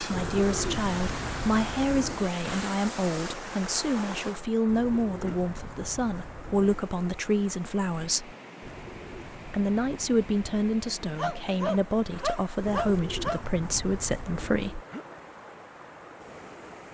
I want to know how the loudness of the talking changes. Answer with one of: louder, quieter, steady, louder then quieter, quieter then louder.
steady.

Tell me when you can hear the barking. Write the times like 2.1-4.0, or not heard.
11.2-13.4.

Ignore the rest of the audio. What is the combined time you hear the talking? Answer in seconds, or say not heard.
14 s.